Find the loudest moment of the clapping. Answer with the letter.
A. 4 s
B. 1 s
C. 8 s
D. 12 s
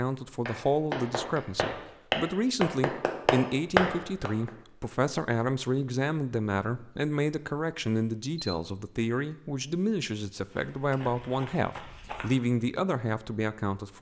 A.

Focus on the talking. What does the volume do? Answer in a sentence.
The volume of the talking stays about the same.